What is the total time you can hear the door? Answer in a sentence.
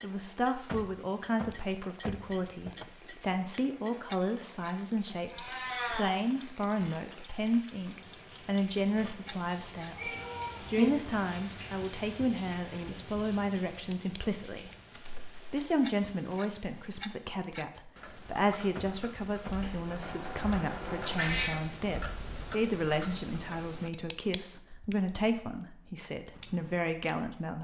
The door can be heard for 4 seconds in total.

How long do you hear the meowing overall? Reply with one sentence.
You can hear the meowing for 4 seconds altogether.